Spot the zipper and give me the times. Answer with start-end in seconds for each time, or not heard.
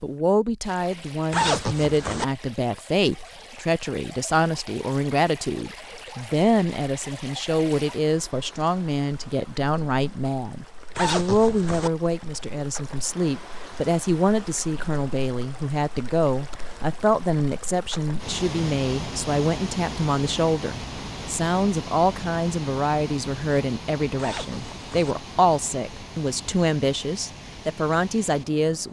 1.3-2.2, 10.9-11.9, 24.1-25.1.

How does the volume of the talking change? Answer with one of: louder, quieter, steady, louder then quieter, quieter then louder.
steady.